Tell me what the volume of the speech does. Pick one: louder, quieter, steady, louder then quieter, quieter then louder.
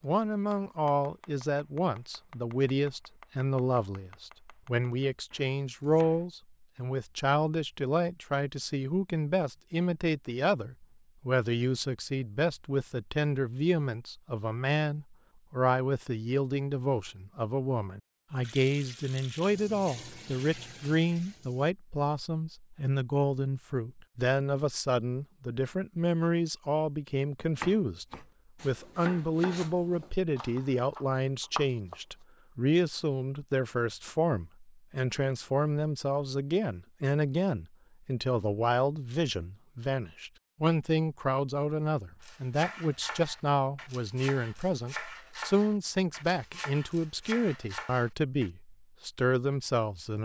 steady.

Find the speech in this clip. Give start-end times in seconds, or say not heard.
0.0-50.2.